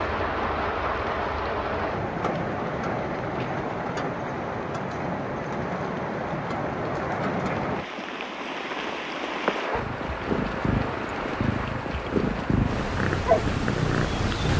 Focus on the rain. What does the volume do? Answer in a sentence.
The loudness of the rain stays about the same.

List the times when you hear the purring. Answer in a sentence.
You can hear the purring from 9.7 to 14.5 s.